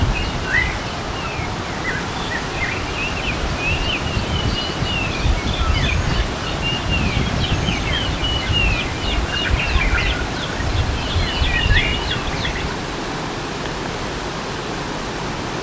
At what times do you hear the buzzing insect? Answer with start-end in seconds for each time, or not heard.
not heard.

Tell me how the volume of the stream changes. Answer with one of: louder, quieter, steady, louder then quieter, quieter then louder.
steady.